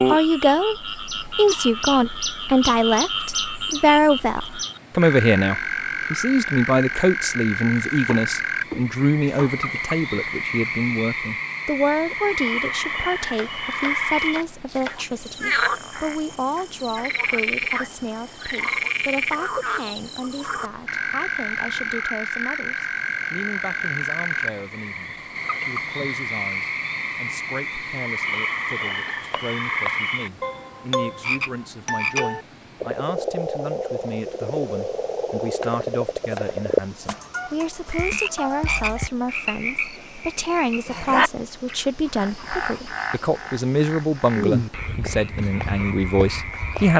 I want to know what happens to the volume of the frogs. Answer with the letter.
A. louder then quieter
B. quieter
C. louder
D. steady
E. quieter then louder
D.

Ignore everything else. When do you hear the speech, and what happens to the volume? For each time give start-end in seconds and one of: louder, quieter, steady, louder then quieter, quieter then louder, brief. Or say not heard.
0.1-46.9 quieter then louder.